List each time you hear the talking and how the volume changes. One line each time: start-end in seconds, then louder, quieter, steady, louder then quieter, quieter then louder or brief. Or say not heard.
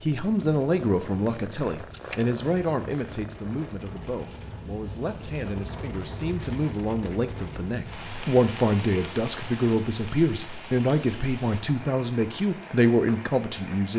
0.0-13.9 quieter then louder.